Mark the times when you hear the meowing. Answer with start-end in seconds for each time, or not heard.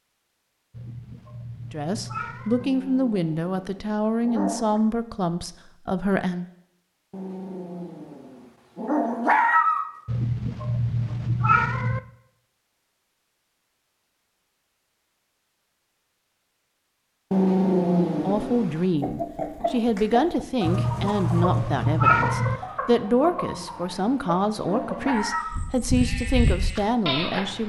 0.7-2.6, 10.1-12.0, 20.6-22.6.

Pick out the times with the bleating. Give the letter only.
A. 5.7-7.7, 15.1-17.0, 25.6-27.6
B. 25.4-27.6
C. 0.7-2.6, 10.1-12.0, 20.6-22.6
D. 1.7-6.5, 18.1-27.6
B.